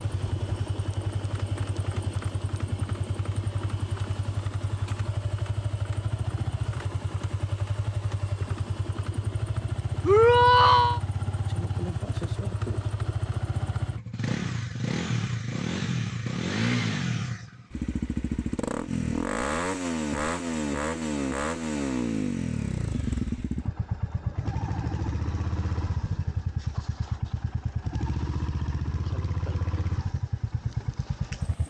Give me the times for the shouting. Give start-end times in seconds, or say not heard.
10.1-11.0.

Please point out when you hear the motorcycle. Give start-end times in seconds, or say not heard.
0.0-31.6.